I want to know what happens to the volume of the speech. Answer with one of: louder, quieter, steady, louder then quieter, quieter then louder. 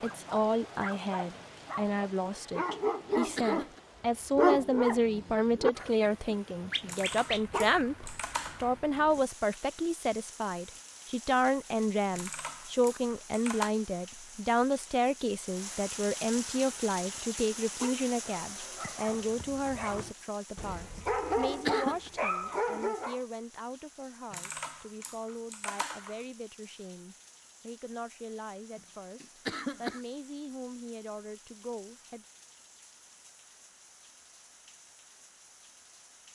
quieter.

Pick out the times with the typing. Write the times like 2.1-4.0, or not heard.
6.8-8.8, 12.1-13.7, 24.3-26.2.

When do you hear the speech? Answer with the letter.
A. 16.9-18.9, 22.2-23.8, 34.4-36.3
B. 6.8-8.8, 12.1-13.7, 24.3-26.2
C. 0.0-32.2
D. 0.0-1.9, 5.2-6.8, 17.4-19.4
C.